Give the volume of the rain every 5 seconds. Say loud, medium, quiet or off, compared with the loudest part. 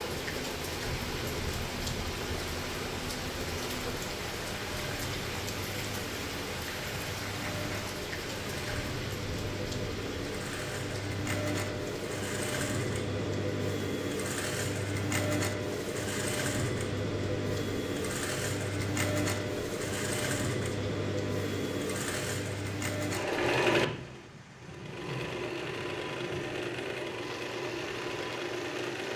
loud, loud, medium, medium, medium, medium.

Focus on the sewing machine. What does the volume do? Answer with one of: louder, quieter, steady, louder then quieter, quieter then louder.
louder.